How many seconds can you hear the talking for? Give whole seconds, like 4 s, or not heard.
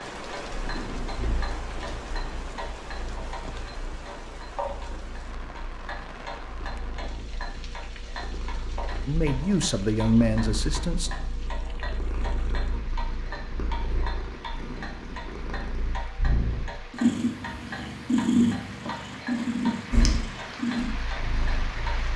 2 s.